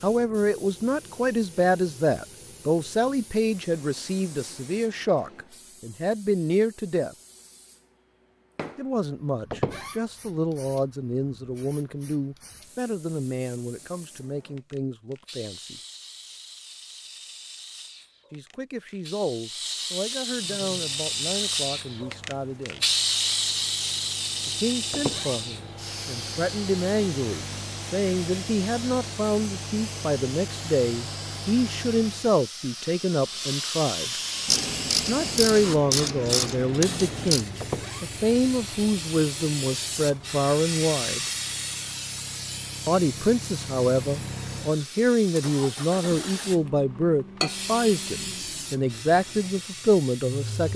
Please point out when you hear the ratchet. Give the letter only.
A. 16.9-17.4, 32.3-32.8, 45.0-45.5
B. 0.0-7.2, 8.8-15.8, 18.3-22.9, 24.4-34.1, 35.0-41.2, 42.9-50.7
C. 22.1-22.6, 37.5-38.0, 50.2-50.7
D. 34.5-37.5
D.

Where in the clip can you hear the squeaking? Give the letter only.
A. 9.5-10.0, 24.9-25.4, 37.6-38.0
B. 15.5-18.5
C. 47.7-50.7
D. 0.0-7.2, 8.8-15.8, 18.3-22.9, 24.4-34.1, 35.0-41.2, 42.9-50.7
A.